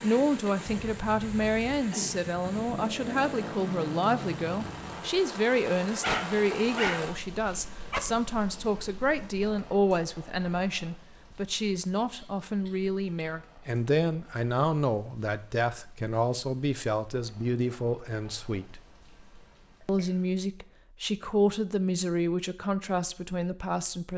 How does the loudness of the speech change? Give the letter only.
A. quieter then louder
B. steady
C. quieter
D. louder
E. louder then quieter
B.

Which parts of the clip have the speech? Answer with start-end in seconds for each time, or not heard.
0.0-18.8, 19.9-24.1.